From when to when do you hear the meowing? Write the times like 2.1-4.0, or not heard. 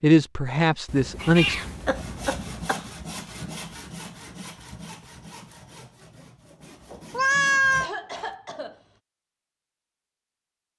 0.8-2.7, 7.1-7.9.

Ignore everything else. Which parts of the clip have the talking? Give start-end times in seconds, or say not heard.
0.0-1.6.